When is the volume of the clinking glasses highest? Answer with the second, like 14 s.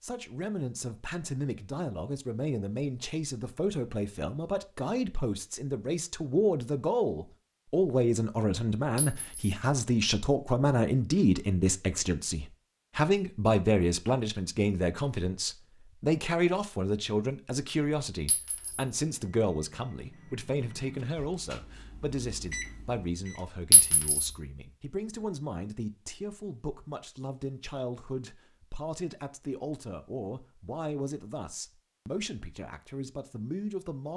24 s.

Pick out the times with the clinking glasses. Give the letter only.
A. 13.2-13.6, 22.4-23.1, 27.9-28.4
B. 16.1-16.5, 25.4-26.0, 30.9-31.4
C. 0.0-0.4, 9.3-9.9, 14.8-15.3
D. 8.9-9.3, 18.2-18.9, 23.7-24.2
D.